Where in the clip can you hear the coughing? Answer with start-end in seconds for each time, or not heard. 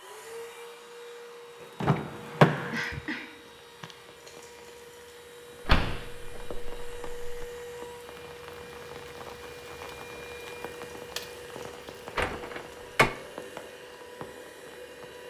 2.7-4.0.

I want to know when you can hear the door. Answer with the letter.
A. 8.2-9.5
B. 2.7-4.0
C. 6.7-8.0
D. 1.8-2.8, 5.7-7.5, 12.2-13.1
D.